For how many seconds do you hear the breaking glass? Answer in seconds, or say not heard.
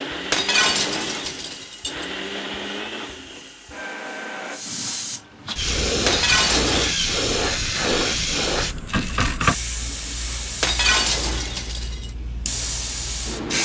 4 s.